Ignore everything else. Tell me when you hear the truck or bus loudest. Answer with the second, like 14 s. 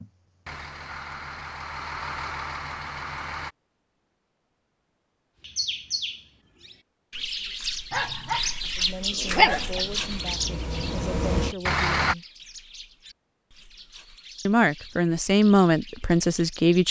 12 s.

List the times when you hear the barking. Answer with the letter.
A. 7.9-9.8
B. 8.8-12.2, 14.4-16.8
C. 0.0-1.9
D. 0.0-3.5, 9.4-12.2
A.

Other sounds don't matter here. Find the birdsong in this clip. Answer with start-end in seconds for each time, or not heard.
5.4-16.8.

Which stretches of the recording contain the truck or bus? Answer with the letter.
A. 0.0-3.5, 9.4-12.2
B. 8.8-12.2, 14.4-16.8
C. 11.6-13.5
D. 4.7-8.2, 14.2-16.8
A.